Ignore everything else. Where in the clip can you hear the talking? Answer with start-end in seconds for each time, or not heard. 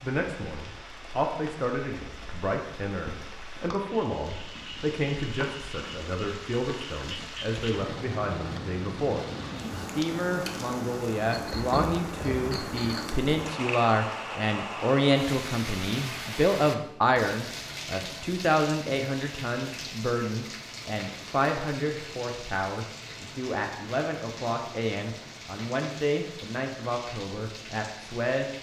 0.0-28.5.